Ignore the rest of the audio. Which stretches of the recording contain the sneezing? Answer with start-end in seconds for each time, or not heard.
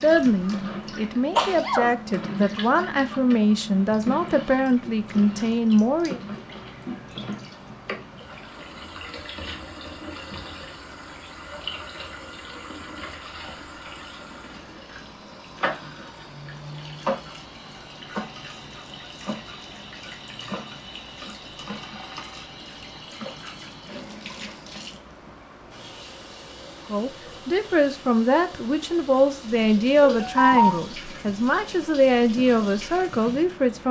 1.4-1.9, 30.0-30.9.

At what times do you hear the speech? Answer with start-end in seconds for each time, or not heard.
0.0-6.2, 26.9-33.8.